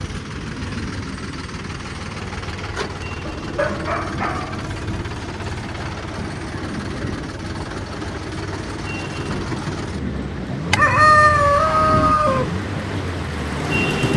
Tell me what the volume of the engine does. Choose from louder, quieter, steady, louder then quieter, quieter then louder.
steady.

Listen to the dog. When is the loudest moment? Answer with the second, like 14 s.
4 s.